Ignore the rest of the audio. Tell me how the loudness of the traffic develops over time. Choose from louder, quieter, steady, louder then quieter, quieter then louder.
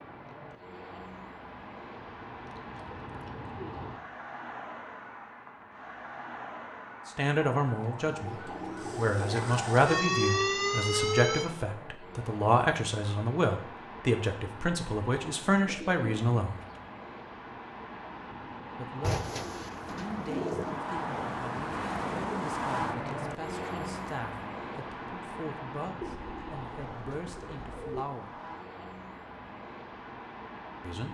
louder then quieter.